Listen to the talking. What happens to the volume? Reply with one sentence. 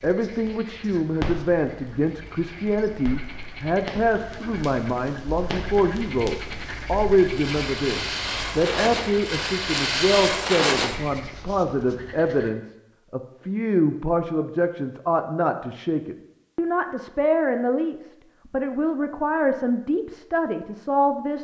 The volume of the talking stays about the same.